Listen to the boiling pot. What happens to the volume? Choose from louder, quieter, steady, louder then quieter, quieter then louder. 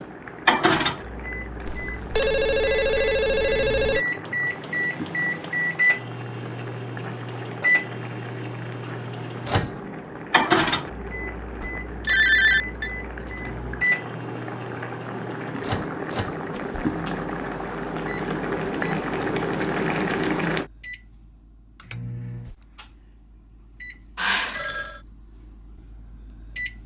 louder.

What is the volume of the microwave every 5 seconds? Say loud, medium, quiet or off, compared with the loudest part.
loud, loud, loud, medium, quiet, quiet.